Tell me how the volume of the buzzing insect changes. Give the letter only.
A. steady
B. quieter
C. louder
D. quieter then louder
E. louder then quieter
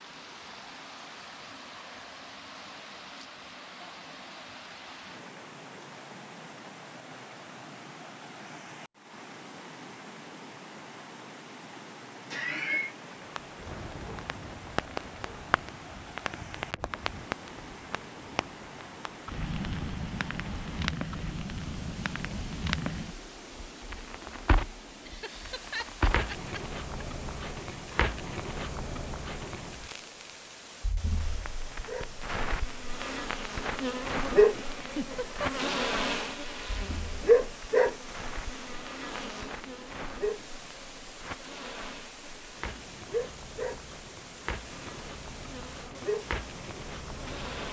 B.